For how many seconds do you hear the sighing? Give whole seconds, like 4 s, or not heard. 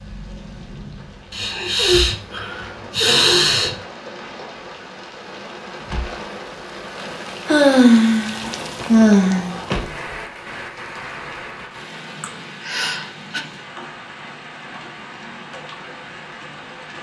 6 s.